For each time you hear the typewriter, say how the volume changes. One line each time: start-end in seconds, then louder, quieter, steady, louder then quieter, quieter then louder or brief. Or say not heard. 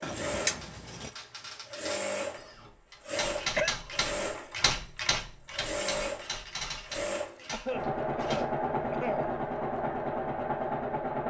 0.4-8.4 louder then quieter.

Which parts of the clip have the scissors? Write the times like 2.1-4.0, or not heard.
0.0-1.1.